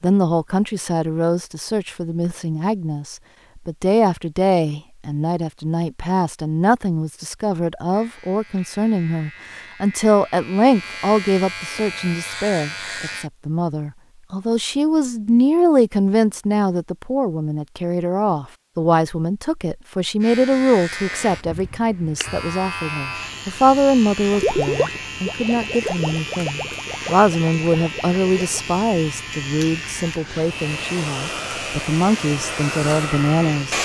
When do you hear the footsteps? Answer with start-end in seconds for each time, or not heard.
not heard.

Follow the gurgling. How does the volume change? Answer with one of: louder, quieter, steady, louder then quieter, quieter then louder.
quieter.